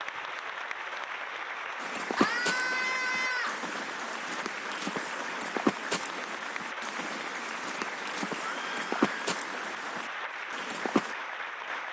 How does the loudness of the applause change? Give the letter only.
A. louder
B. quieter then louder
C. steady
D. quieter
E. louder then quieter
C.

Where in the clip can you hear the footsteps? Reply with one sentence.
You can hear the footsteps from 1.8 to 11.2 s.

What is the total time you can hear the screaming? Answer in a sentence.
You can hear the screaming for 2 seconds altogether.